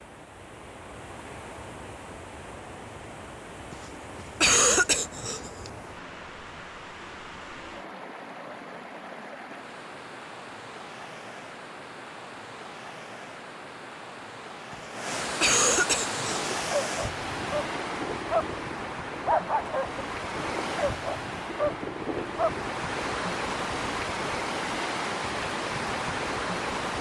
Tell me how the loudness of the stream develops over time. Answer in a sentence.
The loudness of the stream goes up.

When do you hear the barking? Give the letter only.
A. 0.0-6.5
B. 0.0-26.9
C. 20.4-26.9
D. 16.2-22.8
D.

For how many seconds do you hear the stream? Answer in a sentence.
You can hear the stream for 27 seconds altogether.